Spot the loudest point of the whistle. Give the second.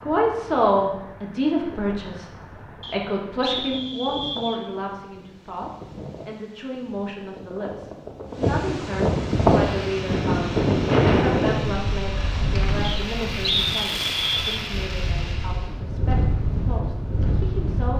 14 s.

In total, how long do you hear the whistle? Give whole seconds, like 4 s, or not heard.
4 s.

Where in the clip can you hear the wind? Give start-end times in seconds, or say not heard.
0.0-17.9.